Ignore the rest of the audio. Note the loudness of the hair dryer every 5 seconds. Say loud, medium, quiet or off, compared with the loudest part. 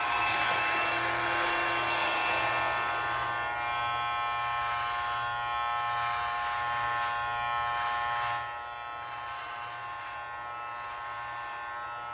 loud, quiet, quiet.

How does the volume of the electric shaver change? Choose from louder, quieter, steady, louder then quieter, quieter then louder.
quieter.